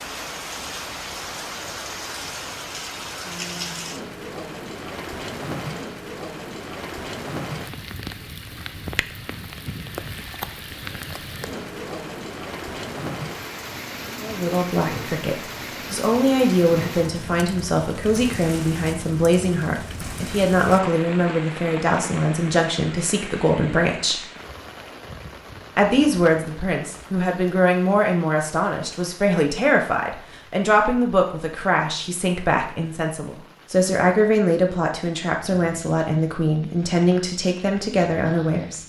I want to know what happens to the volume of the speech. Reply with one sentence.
The loudness of the speech stays about the same.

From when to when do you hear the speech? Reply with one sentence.
The speech can be heard from 14.2 to 24.2 s and from 25.8 to 38.8 s.